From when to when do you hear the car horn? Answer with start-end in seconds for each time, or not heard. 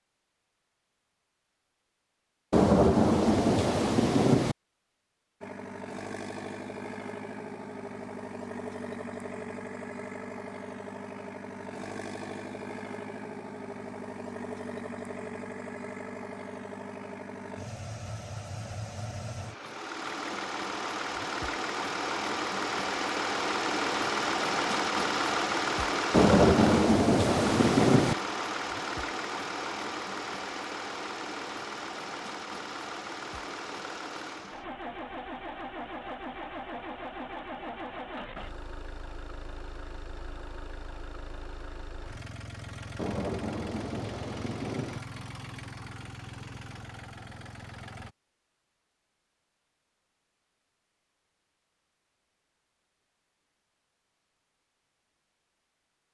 not heard.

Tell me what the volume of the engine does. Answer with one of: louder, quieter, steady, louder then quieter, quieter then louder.
louder then quieter.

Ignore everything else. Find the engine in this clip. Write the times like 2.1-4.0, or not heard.
5.4-48.1.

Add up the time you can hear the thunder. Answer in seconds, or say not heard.
6 s.